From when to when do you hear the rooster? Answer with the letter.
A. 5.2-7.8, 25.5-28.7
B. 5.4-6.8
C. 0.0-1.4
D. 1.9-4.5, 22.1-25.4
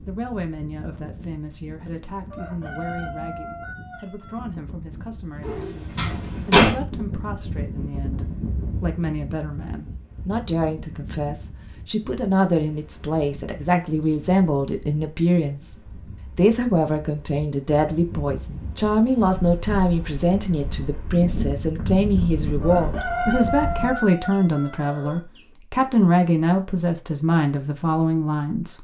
D.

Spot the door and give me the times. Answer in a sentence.
The door can be heard from 5.4 to 6.8 s.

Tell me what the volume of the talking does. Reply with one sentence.
The loudness of the talking goes up.